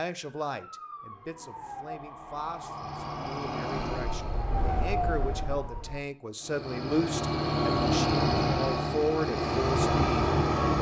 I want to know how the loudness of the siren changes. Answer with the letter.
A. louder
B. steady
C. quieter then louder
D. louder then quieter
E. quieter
A.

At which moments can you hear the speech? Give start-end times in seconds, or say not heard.
0.0-10.7.